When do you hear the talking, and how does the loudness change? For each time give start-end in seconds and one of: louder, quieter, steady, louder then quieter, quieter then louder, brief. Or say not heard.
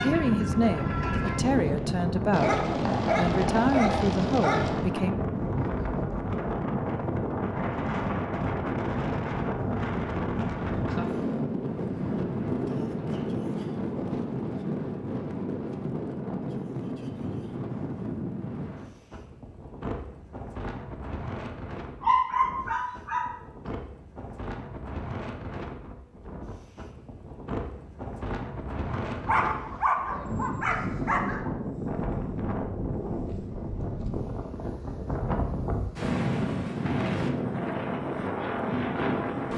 0.0-5.1 steady.